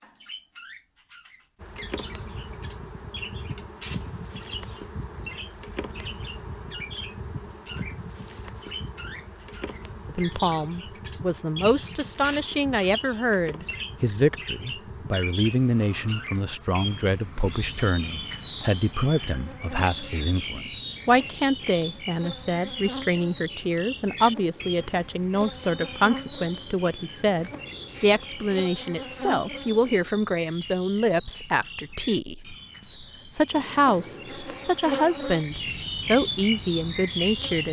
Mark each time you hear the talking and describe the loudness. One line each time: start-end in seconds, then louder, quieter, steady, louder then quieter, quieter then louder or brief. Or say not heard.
10.1-37.6 steady.